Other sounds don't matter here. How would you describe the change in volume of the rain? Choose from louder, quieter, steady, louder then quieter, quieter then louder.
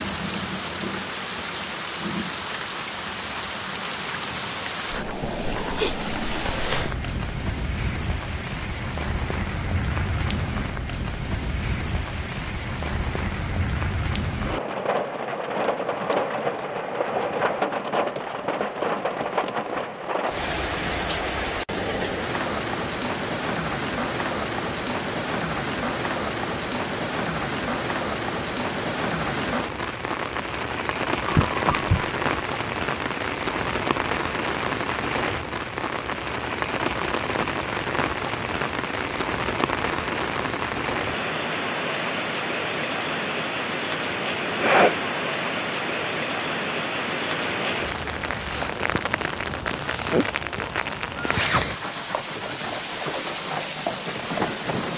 steady.